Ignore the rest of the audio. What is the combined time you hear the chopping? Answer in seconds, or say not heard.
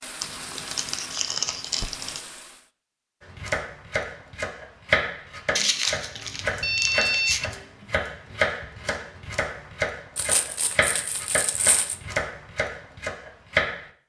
11 s.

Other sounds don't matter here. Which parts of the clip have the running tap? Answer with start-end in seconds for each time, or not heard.
0.0-2.7.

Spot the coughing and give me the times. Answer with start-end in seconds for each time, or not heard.
not heard.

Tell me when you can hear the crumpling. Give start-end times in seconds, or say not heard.
0.2-2.2, 5.5-7.4, 10.2-12.0.